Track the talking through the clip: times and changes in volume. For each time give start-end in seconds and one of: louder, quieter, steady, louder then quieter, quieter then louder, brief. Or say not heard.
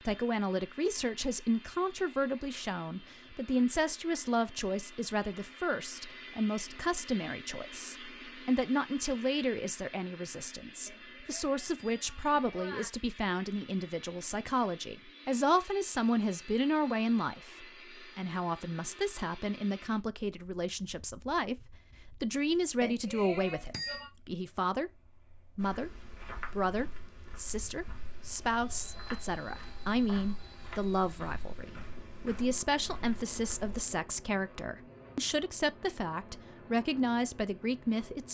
0.1-38.2 steady.